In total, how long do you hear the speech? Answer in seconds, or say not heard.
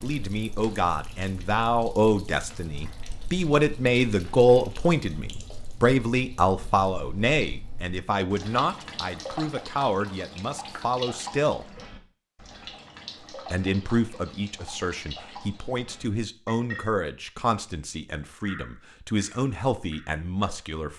19 s.